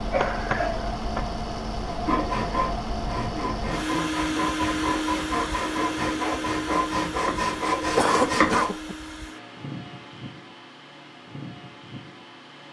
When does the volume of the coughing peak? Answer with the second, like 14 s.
8 s.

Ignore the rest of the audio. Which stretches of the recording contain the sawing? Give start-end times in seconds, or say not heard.
1.9-8.8.